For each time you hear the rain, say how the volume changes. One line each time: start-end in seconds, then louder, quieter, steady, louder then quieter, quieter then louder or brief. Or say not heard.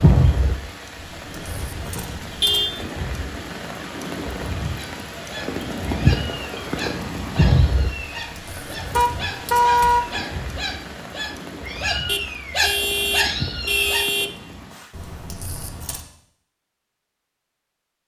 0.0-14.9 louder then quieter.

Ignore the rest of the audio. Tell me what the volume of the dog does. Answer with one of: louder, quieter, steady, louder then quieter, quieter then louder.
louder.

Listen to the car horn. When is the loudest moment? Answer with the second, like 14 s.
10 s.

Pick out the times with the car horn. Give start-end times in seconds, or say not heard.
1.9-2.7, 8.9-10.1, 12.1-14.3.